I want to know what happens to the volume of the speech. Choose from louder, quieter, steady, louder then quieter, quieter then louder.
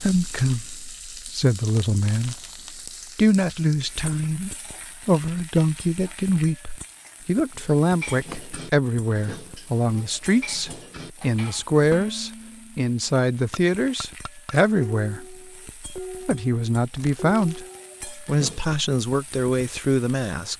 steady.